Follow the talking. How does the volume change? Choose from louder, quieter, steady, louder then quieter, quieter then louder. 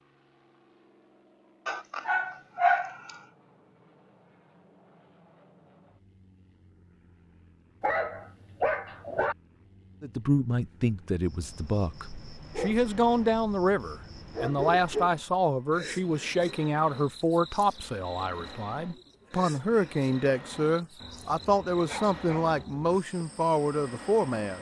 steady.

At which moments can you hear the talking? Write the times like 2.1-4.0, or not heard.
10.0-24.5.